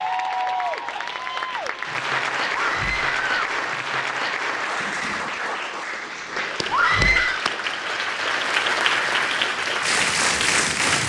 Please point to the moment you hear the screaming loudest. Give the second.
7 s.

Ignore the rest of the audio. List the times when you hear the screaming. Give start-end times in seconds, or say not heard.
2.5-3.4, 6.7-7.5.